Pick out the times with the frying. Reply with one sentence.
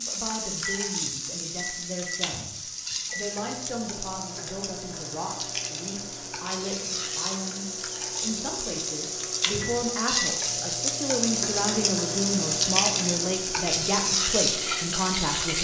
You can hear the frying from 0.0 to 15.5 s.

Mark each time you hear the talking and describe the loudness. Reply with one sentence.
You can hear the talking from 0.0 to 15.5 s, getting louder.